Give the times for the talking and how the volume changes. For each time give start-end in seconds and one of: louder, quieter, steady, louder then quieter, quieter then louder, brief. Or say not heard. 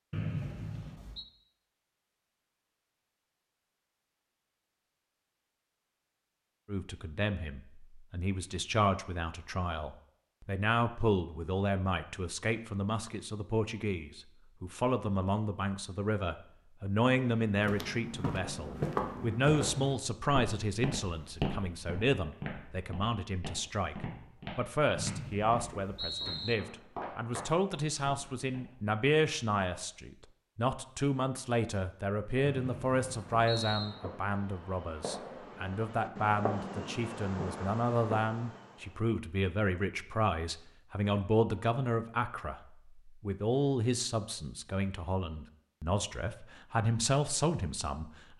6.7-48.3 steady.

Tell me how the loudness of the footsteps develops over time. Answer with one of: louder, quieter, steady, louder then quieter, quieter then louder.
quieter.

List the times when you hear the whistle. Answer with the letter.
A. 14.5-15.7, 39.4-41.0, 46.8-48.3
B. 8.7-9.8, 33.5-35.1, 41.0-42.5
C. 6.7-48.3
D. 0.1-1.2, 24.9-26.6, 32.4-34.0
D.